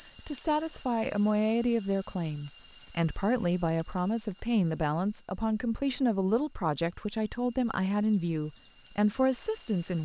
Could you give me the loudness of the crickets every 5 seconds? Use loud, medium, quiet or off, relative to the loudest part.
loud, medium.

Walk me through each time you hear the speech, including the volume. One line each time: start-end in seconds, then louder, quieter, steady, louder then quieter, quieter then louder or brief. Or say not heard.
0.1-10.0 steady.